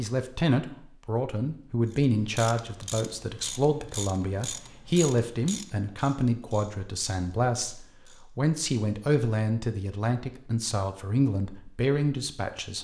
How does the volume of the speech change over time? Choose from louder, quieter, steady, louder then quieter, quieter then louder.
steady.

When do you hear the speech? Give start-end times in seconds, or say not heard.
0.0-12.7.